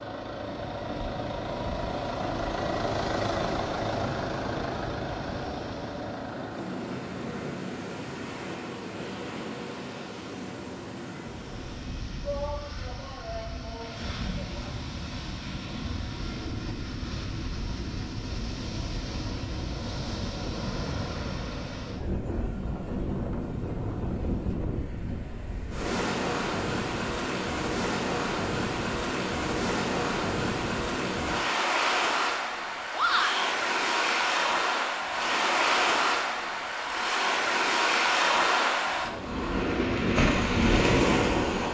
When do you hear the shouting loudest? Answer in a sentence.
The volume of the shouting peaks at 33 seconds.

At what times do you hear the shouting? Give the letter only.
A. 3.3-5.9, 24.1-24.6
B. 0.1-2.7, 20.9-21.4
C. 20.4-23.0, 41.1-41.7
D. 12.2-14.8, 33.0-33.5
D.